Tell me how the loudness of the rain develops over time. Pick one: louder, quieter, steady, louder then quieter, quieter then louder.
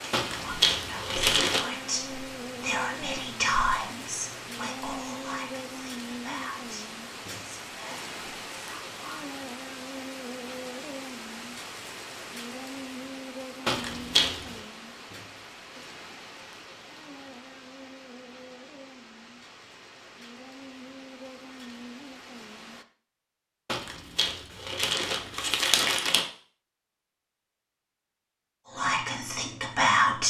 quieter.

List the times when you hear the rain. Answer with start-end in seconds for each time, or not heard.
0.0-22.9.